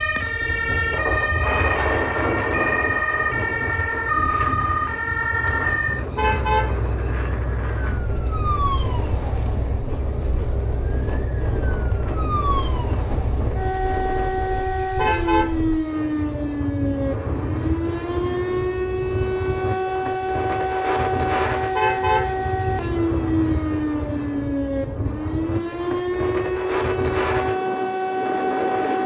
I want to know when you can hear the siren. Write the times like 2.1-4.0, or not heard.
0.0-29.0.